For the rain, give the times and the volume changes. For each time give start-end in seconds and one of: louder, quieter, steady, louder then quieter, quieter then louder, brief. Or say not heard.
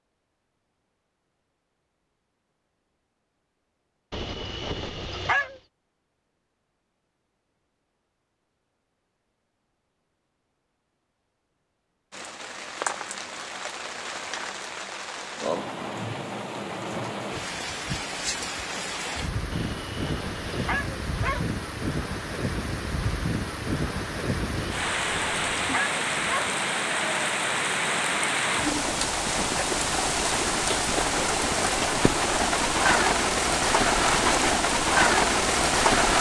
12.1-36.1 louder.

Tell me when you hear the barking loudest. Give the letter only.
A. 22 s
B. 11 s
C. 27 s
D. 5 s
D.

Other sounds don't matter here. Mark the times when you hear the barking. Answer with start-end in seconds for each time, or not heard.
4.1-5.6, 19.5-21.5, 24.6-26.6.